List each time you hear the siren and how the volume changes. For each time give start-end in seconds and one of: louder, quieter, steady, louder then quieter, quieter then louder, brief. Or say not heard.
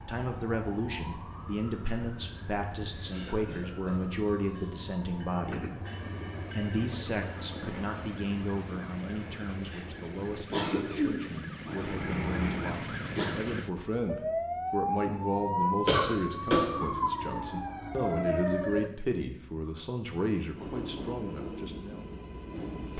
0.0-18.9 louder.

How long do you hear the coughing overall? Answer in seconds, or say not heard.
5 s.